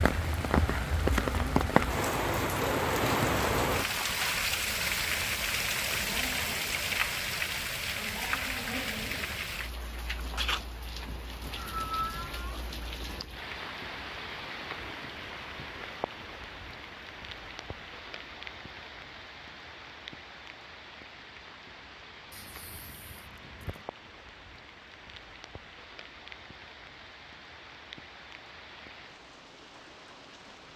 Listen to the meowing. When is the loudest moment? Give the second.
12 s.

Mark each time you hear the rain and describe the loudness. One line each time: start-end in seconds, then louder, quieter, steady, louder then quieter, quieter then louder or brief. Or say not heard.
0.0-30.7 quieter.